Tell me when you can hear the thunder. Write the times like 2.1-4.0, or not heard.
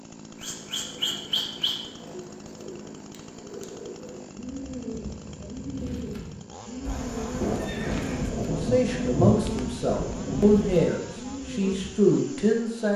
7.4-10.6.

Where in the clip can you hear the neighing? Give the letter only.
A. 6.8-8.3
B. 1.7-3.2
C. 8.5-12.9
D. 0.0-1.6
A.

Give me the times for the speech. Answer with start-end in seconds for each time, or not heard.
8.5-12.9.